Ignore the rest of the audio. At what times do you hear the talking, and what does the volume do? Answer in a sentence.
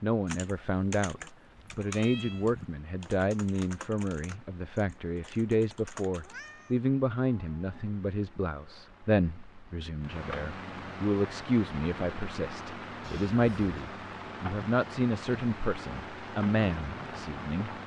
The talking can be heard from 0.0 to 17.8 s, at a steady volume.